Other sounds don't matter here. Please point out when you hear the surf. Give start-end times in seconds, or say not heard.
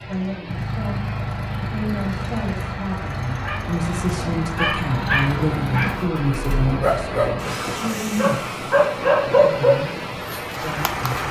0.0-11.2.